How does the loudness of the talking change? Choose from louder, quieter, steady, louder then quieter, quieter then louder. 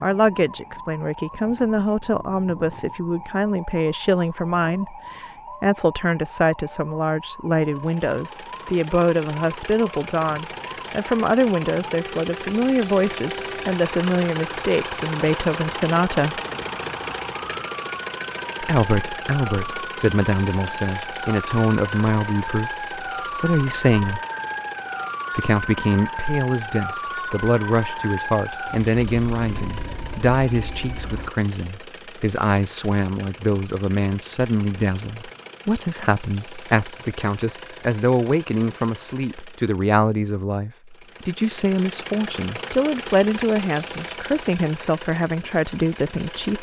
steady.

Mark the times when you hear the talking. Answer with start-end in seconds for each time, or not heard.
0.0-16.4, 18.6-24.2, 25.4-46.5.